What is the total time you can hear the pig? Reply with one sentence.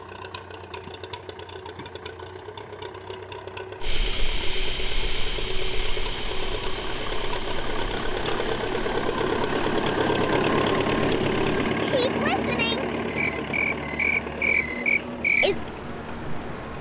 The pig can't be heard in this clip.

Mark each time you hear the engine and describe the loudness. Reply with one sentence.
The engine can be heard from 0.0 to 16.7 s, getting louder then quieter.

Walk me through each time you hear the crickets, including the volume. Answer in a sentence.
The crickets can be heard from 3.8 to 16.7 s, getting quieter then louder.